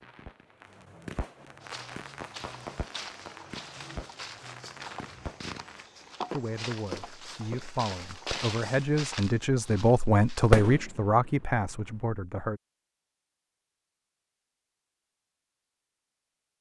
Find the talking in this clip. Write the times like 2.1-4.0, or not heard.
6.3-12.6.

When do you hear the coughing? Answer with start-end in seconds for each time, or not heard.
not heard.